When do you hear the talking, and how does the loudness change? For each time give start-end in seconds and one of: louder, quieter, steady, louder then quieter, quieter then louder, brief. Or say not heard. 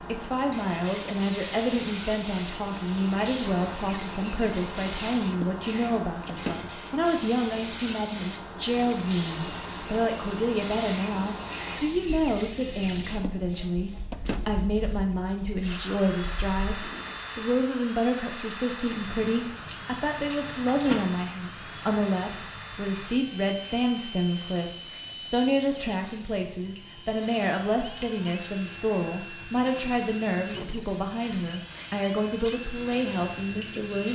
0.1-34.1 steady.